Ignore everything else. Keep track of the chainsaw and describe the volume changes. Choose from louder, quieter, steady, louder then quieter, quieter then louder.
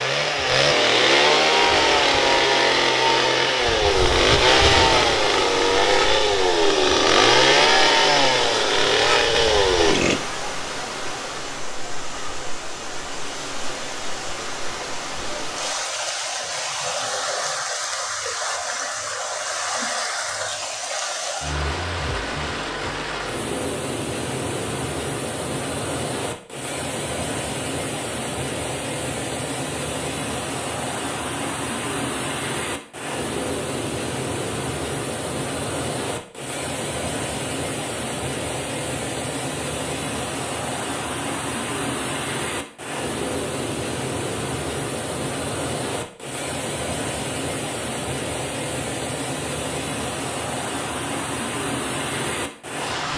steady.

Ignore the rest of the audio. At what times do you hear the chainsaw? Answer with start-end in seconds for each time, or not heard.
0.0-10.2.